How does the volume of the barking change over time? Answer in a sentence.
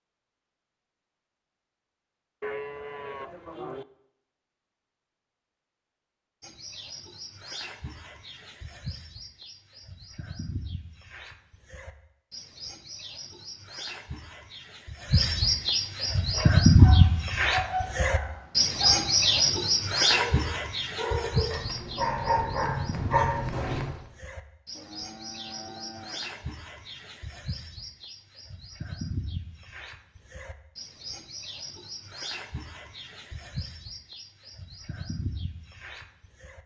The volume of the barking goes up.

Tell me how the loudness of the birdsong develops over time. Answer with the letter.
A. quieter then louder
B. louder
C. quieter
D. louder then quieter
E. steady
D.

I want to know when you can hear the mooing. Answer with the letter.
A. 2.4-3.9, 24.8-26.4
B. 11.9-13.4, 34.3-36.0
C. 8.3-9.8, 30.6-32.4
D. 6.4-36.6
A.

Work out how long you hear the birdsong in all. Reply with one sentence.
You can hear the birdsong for 30 seconds altogether.